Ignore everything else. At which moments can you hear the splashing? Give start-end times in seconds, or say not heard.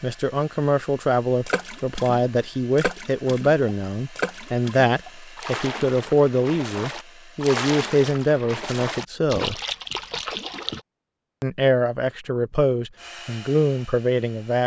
1.4-10.8.